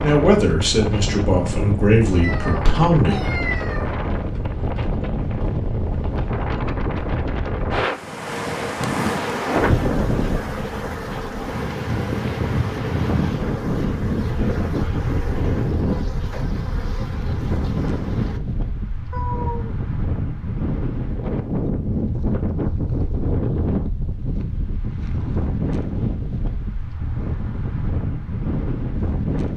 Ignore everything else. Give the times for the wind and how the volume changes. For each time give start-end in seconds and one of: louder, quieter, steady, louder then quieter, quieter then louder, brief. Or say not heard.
0.0-29.5 steady.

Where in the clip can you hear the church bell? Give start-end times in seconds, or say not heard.
not heard.